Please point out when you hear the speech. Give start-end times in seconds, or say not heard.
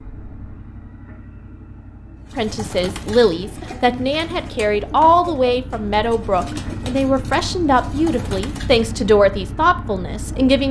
2.4-10.6.